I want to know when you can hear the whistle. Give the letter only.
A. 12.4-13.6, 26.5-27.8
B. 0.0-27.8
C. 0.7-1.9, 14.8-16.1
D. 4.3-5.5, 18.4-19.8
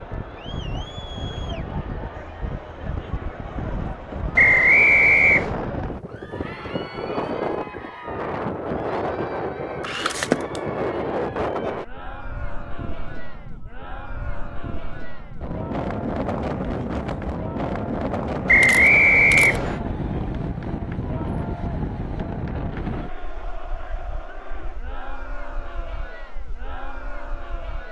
D.